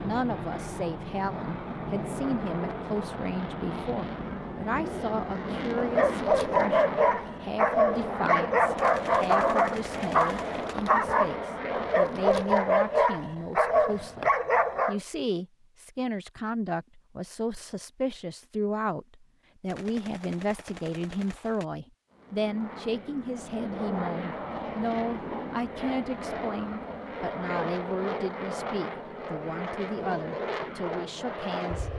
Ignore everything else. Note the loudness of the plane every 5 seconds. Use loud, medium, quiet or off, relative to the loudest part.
loud, loud, loud, off, loud, loud, loud.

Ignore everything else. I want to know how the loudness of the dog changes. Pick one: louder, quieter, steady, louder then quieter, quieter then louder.
steady.